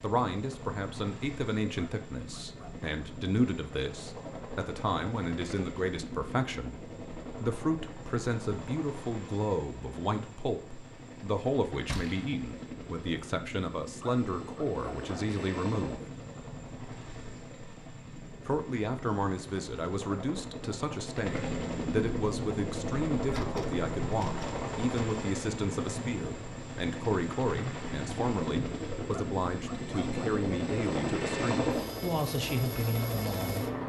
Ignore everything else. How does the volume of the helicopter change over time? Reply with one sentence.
The volume of the helicopter goes up.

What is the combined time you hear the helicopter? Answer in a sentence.
The helicopter can be heard for 34 seconds in total.